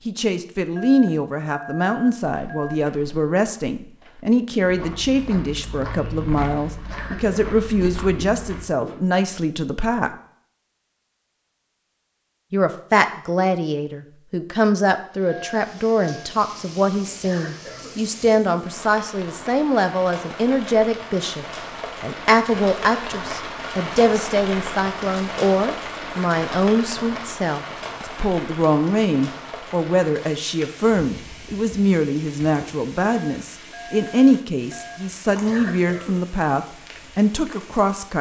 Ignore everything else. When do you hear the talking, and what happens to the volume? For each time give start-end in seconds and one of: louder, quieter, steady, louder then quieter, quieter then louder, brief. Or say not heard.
0.1-10.2 steady
12.5-38.1 steady.